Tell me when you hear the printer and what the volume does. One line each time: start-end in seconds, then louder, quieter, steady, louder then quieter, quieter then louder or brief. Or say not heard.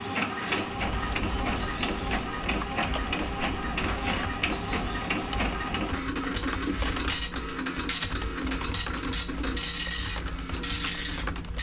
0.0-11.5 steady.